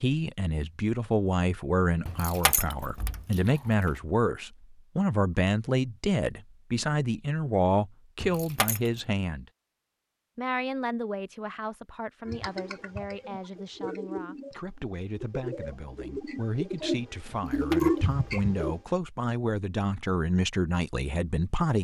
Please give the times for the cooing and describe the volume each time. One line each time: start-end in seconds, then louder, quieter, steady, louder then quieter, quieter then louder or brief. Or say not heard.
12.2-18.8 louder.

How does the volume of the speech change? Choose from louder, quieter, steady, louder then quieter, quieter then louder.
quieter then louder.